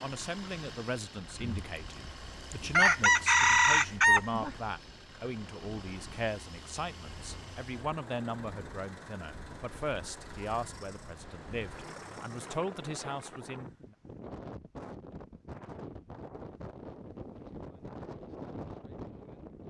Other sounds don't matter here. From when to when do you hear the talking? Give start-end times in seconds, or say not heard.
0.0-13.9.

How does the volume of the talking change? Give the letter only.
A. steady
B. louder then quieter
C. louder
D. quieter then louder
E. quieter
A.